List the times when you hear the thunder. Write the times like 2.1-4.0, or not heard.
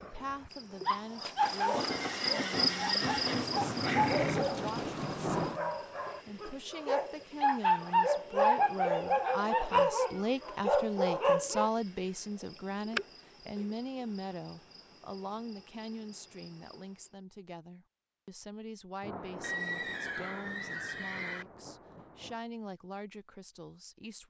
1.2-5.6, 19.0-22.4.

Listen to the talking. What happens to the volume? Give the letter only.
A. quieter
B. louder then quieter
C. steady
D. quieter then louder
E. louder
B.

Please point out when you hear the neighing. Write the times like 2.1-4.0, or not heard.
1.9-4.5, 19.4-21.4.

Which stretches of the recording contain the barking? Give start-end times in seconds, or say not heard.
0.8-11.7.